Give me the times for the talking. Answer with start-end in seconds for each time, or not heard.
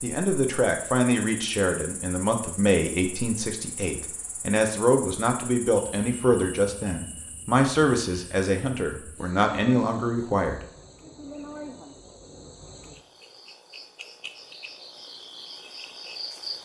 0.0-10.7.